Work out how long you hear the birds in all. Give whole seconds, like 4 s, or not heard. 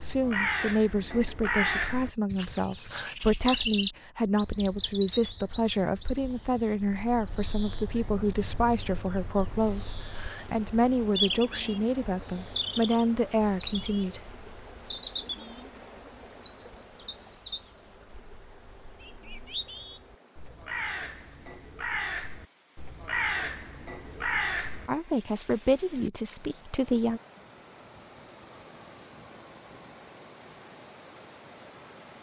25 s.